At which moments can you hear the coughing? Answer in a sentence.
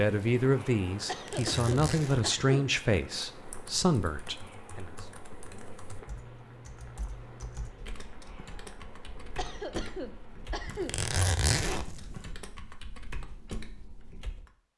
The coughing can be heard from 1.1 to 2.6 s and from 9.3 to 10.9 s.